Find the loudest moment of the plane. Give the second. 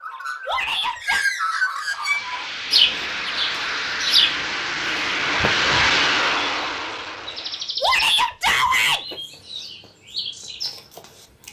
6 s.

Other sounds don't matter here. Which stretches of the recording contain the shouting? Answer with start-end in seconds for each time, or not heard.
0.5-1.2, 7.8-9.0.